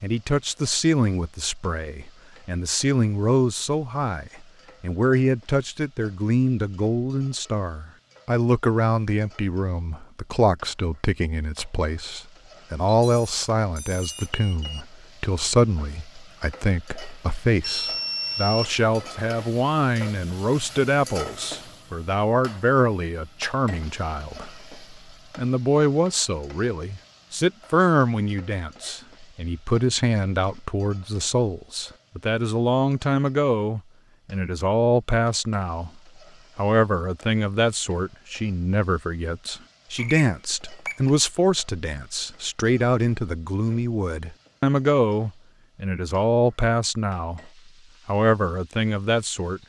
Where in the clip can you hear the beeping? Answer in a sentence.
You can hear the beeping from 12.8 to 14.8 s, from 17.6 to 19.1 s and from 40.0 to 41.1 s.